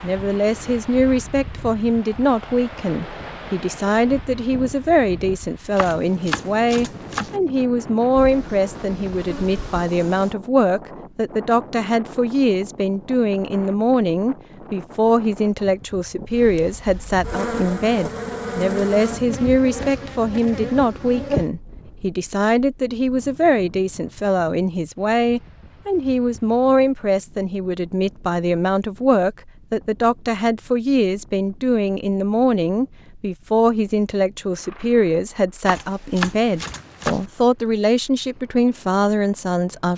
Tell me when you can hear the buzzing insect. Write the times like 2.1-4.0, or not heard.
8.1-10.3, 16.3-21.5.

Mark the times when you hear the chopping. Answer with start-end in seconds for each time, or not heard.
5.8-7.3, 35.6-37.2.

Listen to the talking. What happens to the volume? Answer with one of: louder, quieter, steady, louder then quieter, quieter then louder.
steady.